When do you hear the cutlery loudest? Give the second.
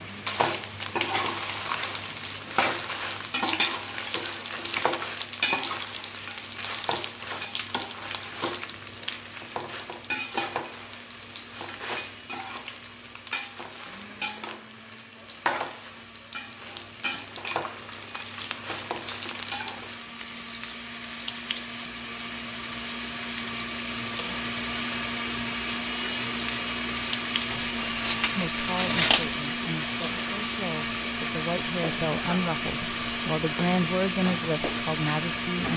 29 s.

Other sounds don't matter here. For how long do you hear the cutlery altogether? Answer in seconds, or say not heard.
2 s.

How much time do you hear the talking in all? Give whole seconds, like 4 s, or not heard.
7 s.